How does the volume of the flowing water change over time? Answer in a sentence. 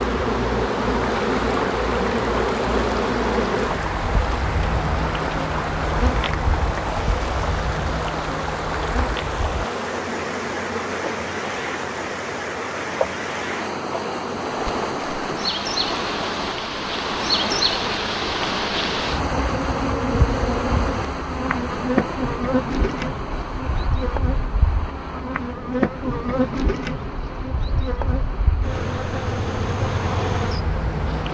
The volume of the flowing water goes down.